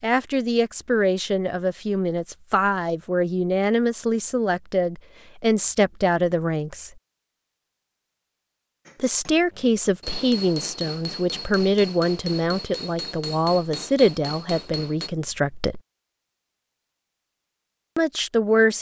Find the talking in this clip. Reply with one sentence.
The talking can be heard from 0.0 to 6.9 s, from 9.0 to 15.8 s and from 17.9 to 18.7 s.